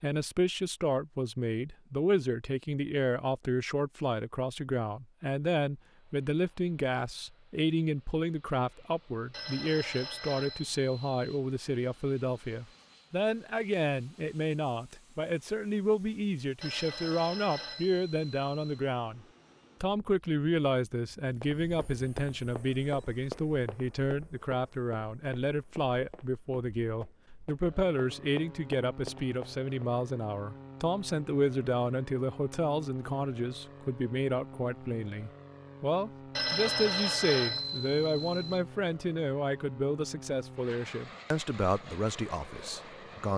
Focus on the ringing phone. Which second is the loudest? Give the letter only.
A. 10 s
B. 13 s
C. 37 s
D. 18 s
C.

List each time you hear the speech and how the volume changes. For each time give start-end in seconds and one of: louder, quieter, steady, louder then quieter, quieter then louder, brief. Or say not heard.
0.0-43.3 steady.